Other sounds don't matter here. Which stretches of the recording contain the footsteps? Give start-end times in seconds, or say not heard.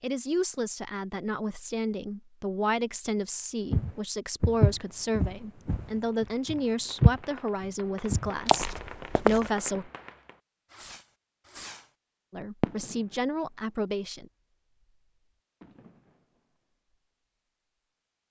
3.7-9.5.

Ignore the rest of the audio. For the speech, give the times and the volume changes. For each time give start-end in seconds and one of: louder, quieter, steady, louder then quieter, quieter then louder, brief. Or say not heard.
0.0-9.9 steady
12.3-14.2 brief.